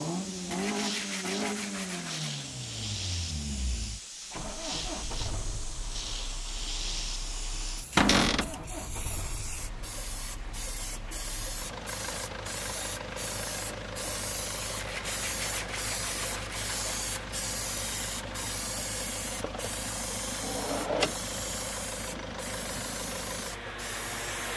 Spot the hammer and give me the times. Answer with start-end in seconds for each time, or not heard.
not heard.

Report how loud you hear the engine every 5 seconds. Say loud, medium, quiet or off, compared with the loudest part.
loud, medium, medium, medium, loud.